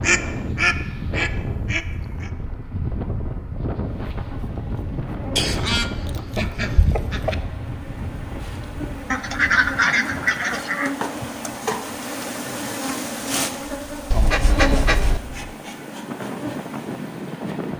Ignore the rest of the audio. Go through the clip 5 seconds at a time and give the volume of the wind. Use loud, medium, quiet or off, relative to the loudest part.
loud, loud, medium, loud.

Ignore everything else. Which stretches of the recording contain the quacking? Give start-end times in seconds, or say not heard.
0.0-2.3, 5.3-7.3, 9.1-10.9, 14.1-15.2.